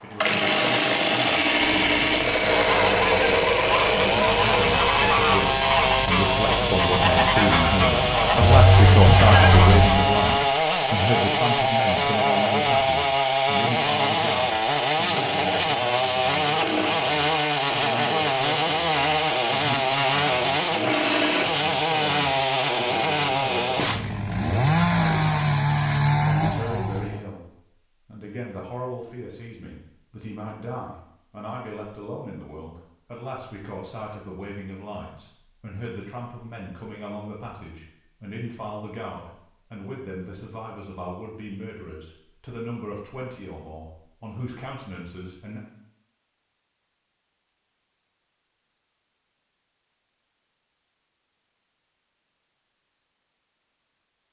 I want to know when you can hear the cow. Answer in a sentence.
You can hear the cow from 8.4 to 9.9 s.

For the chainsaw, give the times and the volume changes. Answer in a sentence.
You can hear the chainsaw from 0.0 to 27.2 s, at a steady volume.